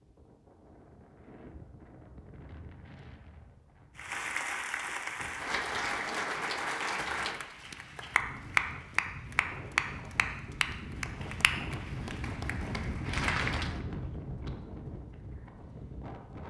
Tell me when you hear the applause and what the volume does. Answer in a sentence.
You can hear the applause from 4.0 to 13.8 s, getting louder then quieter.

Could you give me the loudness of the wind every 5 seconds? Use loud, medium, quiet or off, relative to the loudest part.
quiet, medium, loud, medium.